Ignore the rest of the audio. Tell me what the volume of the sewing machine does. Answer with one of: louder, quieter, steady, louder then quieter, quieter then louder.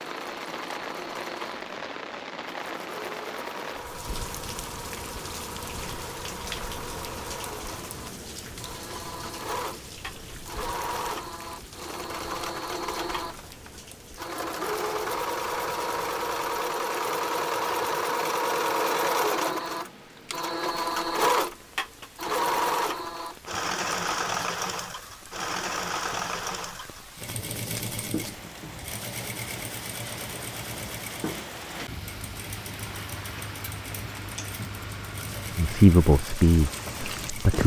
louder then quieter.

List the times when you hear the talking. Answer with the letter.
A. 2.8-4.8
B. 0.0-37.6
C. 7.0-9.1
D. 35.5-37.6
D.